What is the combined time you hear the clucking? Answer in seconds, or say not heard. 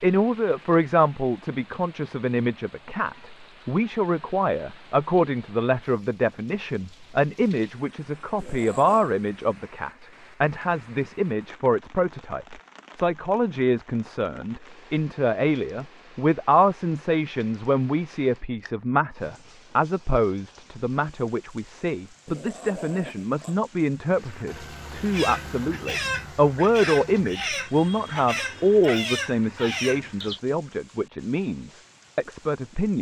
5 s.